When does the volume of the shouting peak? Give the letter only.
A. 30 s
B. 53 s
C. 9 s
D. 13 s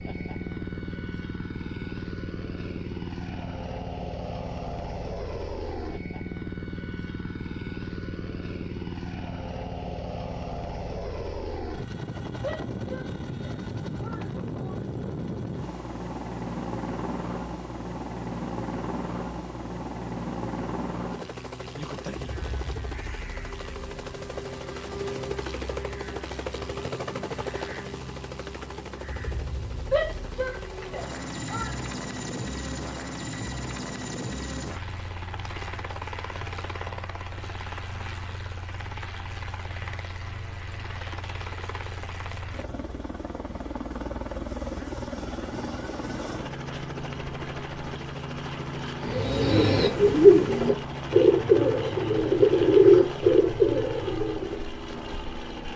A.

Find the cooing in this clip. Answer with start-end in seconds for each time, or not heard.
49.0-54.5.